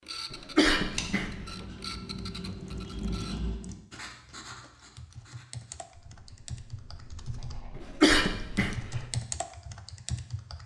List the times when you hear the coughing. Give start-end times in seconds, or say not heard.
0.3-1.3, 7.8-9.0.